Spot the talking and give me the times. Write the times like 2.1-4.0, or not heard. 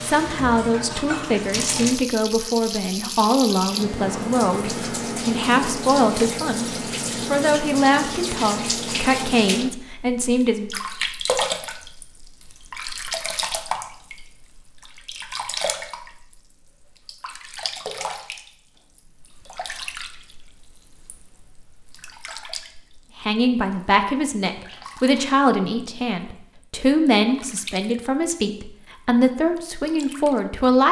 0.0-6.7, 7.3-10.8, 23.2-30.8.